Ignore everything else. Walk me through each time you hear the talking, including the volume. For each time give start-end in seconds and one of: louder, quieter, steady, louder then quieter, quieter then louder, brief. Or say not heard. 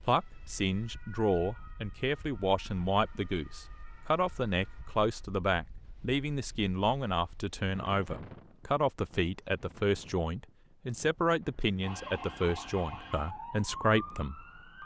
0.0-14.4 steady.